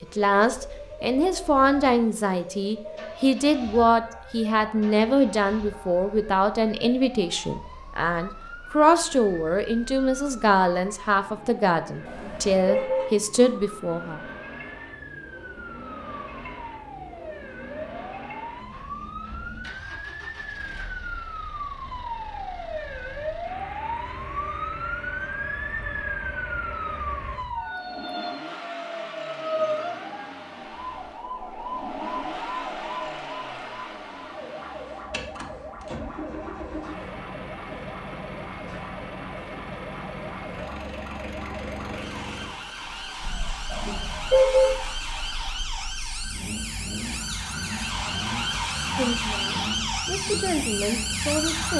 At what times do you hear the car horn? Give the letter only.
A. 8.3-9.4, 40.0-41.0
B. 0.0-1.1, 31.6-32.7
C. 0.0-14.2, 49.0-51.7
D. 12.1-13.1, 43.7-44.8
D.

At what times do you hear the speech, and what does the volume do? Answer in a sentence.
The speech can be heard from 0.0 to 14.2 s, at a steady volume; and briefly from 49.0 to 51.7 s.